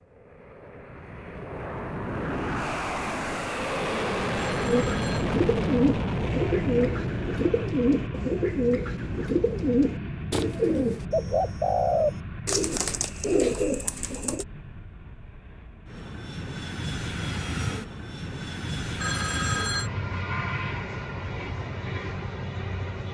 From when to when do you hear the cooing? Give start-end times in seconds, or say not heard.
4.7-14.4.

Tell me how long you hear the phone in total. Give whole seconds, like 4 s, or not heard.
2 s.